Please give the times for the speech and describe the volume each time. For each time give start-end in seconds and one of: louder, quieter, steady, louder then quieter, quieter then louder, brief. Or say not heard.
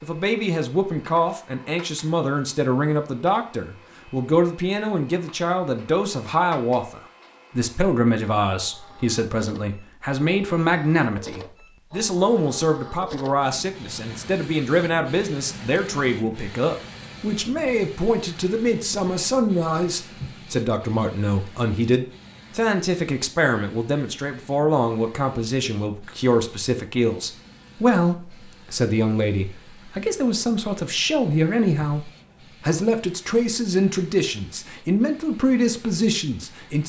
0.0-36.8 steady.